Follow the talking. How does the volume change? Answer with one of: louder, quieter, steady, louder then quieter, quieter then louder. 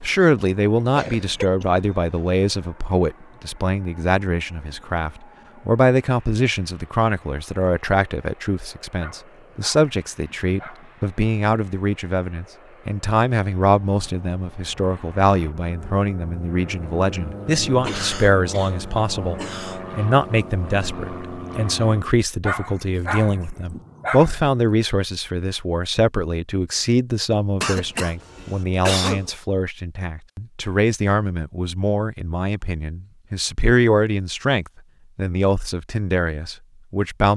steady.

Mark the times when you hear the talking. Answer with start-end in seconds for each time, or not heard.
0.0-37.3.